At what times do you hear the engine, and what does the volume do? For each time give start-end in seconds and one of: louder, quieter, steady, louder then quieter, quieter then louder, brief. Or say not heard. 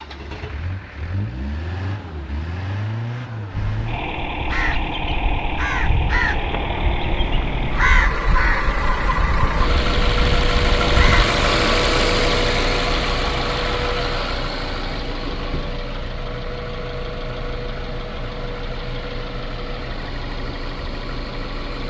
0.0-21.8 louder then quieter.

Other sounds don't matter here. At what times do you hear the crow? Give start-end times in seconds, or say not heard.
3.5-11.3.